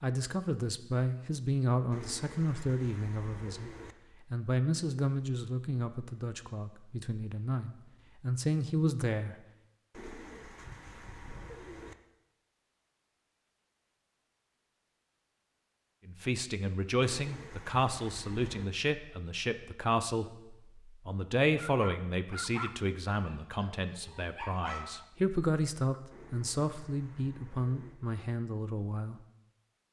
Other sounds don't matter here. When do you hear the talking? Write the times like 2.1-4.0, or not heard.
0.0-3.7, 4.3-9.3, 16.1-29.2.